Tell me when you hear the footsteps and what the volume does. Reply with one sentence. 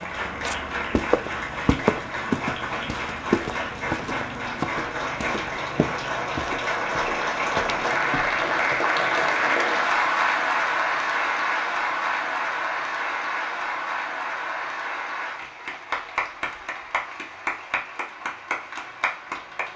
You can hear the footsteps from 0.0 to 8.9 s, getting quieter.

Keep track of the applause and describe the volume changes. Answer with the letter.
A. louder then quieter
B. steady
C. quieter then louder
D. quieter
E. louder
A.